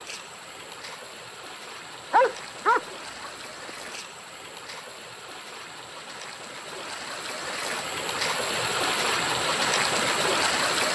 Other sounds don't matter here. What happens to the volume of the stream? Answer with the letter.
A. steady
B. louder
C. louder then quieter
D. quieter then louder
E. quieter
B.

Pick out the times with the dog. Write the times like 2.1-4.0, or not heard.
2.1-3.7.